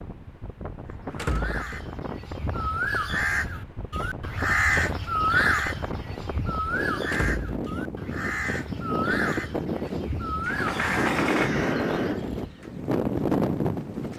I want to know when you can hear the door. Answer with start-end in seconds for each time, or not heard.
1.1-1.9, 7.0-7.8, 10.4-11.6.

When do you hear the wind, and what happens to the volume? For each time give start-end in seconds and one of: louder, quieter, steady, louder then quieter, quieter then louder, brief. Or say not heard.
0.0-14.1 louder.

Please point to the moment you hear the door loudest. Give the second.
11 s.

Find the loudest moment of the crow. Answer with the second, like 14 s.
5 s.